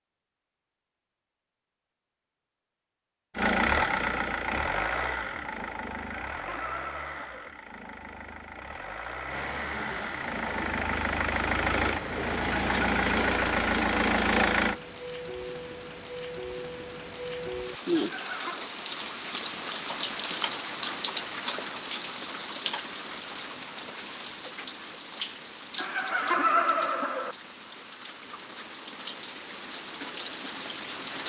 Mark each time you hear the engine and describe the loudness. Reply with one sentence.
You can hear the engine from 3.4 to 14.8 s, getting quieter then louder.